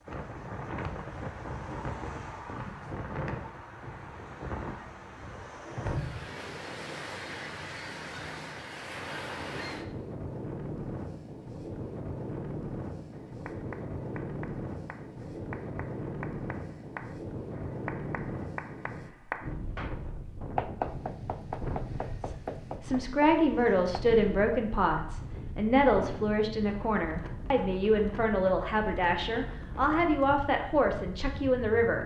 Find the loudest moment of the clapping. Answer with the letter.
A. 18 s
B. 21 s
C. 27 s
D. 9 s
B.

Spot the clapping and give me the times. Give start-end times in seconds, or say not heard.
13.1-24.1.